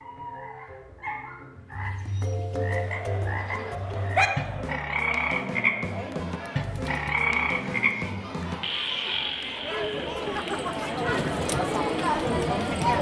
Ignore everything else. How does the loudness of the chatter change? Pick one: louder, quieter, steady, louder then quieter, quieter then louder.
louder.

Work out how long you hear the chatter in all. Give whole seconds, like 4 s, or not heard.
10 s.